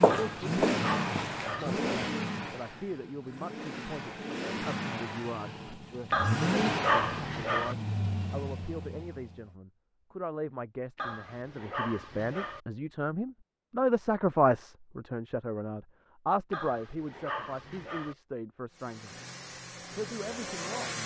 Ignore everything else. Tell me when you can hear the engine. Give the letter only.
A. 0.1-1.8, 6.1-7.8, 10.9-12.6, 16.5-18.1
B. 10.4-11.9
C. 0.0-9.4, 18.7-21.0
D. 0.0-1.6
C.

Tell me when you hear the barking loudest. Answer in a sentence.
The volume of the barking peaks at 7 seconds.